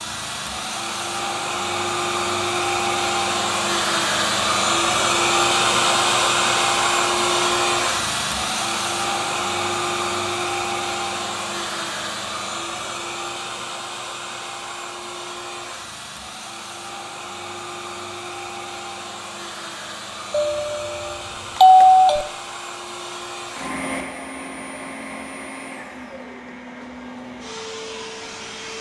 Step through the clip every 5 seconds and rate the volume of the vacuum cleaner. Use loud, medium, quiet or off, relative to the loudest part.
loud, loud, medium, quiet, quiet, quiet.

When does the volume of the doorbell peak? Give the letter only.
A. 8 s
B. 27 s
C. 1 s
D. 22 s
D.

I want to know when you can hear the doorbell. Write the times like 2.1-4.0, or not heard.
20.3-22.2.